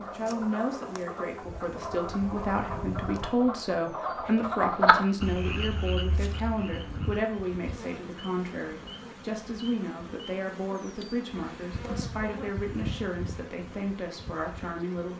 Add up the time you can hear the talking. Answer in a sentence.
You can hear the talking for 15 seconds altogether.